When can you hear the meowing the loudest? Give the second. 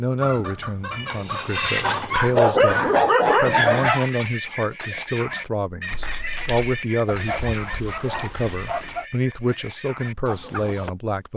2 s.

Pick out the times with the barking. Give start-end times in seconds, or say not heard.
1.8-4.0, 7.0-9.1.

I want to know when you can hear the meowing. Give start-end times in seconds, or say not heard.
0.9-2.2, 5.9-6.7.